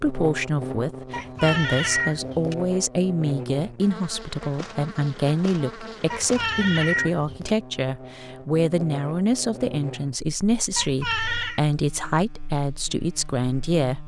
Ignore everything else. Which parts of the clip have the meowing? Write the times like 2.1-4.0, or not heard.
1.1-2.5, 6.1-7.5, 10.8-11.6.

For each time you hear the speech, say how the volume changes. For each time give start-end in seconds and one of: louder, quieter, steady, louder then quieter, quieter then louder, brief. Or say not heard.
0.0-14.0 steady.